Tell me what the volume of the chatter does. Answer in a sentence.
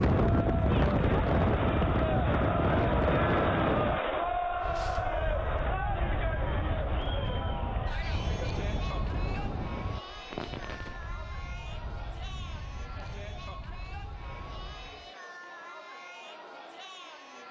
The loudness of the chatter goes down.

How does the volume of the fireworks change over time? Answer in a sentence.
The loudness of the fireworks goes up.